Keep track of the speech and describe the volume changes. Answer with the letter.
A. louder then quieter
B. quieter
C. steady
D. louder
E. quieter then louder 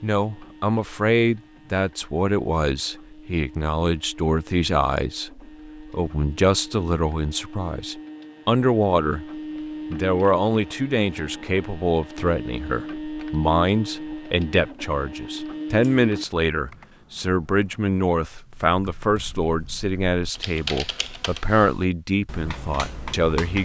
C.